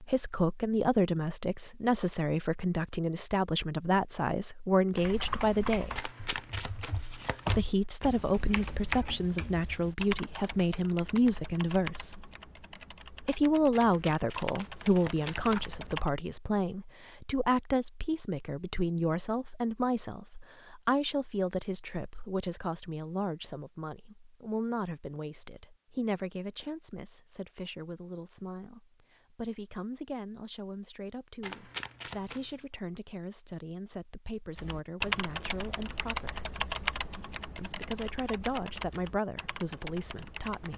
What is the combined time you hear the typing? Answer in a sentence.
You can hear the typing for 17 seconds altogether.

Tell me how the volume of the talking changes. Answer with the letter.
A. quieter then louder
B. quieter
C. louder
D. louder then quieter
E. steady
B.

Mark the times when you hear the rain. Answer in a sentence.
The rain can't be heard in this clip.